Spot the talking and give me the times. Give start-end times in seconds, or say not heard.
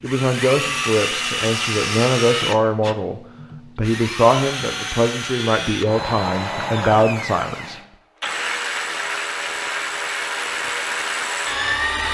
0.0-7.8.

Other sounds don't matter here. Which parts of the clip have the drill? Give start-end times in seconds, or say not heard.
0.0-12.0.